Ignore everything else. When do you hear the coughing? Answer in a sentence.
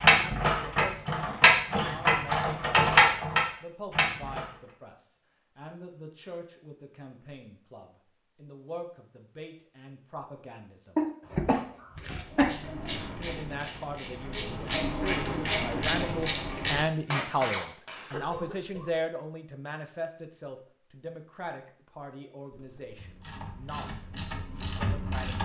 You can hear the coughing from 1.7 to 2.1 s, from 10.9 to 12.6 s and from 18.1 to 18.9 s.